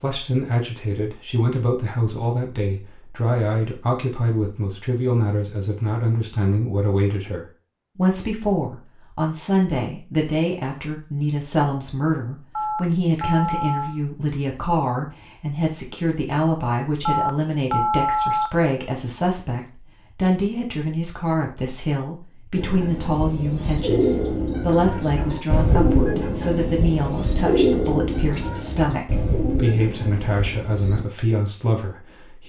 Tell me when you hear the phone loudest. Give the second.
18 s.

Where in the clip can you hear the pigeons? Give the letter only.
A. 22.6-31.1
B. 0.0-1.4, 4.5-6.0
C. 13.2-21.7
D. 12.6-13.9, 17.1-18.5
A.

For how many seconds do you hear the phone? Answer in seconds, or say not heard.
3 s.